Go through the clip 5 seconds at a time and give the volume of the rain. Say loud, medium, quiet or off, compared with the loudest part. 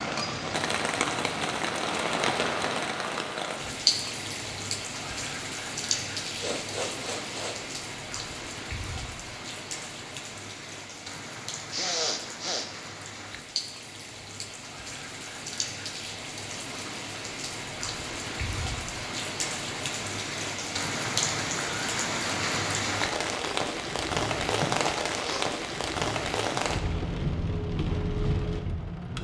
loud, medium, medium, medium, loud, loud.